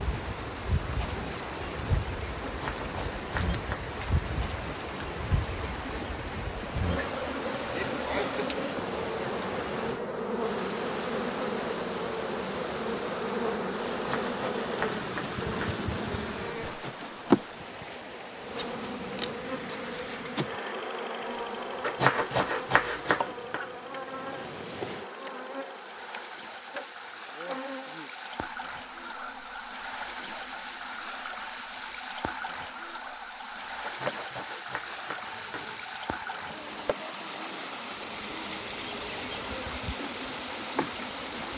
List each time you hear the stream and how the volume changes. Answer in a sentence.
The stream can be heard from 0.0 to 41.5 s, getting quieter then louder.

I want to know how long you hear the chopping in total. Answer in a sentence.
The chopping can be heard for 7 seconds in total.